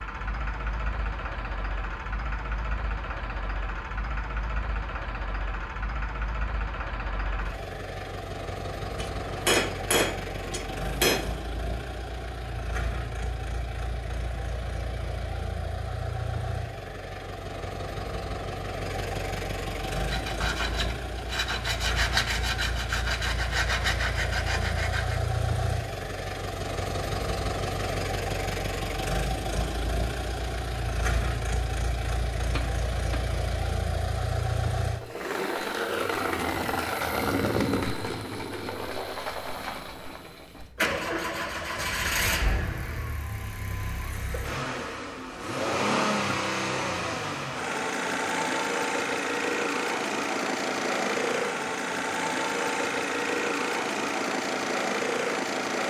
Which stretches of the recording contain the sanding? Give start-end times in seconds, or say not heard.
19.9-25.2.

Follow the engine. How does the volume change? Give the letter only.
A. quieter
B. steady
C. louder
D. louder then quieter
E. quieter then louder
C.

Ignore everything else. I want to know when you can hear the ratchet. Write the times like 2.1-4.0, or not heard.
not heard.